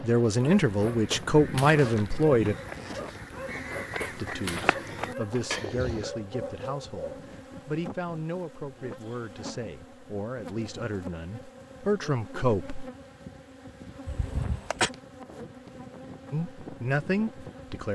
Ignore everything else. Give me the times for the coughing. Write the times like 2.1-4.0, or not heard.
14.1-14.9.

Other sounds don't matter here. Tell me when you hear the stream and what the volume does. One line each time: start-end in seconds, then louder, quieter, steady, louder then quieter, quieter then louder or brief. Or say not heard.
not heard.